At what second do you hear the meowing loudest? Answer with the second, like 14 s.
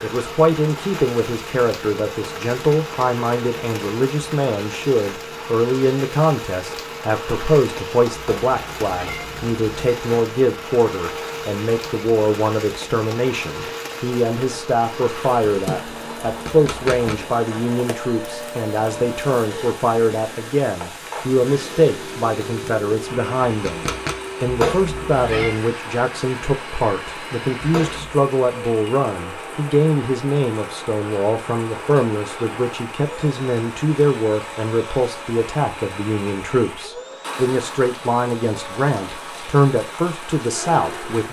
25 s.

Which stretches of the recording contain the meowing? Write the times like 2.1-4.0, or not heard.
8.1-9.8, 24.4-25.6, 27.6-28.1.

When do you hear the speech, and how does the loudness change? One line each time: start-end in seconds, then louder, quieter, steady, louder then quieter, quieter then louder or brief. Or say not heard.
0.0-41.2 steady.